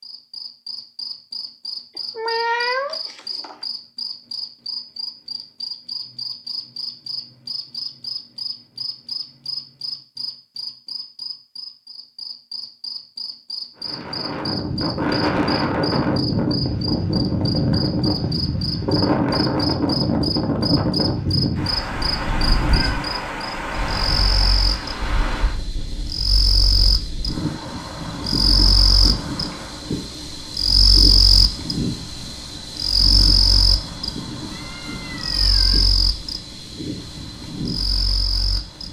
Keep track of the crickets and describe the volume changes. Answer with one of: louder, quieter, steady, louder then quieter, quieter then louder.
louder.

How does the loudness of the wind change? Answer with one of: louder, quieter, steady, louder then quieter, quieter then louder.
quieter.